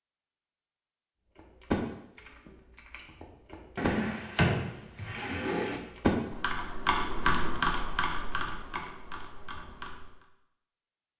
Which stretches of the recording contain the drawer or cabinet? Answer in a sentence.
The drawer or cabinet can be heard from 3.8 to 5.8 s.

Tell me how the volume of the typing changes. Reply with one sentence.
The loudness of the typing goes up, then down.